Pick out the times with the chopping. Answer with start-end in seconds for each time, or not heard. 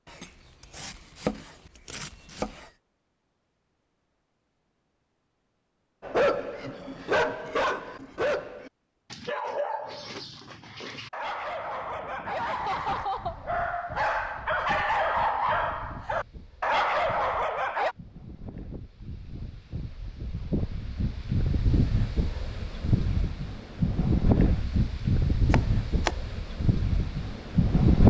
0.1-2.7, 25.5-26.1.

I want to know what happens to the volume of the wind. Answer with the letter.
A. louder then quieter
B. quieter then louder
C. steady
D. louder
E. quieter
D.